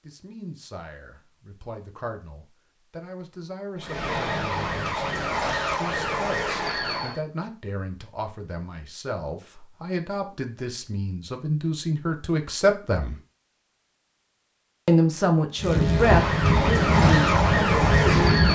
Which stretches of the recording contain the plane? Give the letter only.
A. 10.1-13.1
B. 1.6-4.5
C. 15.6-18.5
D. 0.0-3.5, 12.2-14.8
C.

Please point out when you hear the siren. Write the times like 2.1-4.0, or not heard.
3.8-7.2, 15.9-18.5.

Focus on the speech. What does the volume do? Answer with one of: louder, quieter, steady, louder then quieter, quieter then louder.
louder.